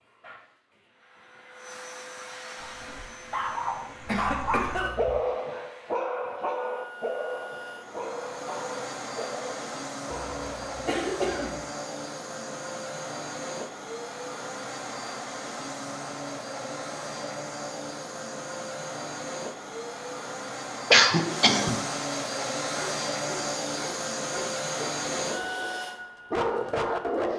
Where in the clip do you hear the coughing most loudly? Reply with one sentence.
The loudest moment of the coughing is at 21 seconds.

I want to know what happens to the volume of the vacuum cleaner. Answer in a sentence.
The volume of the vacuum cleaner goes up.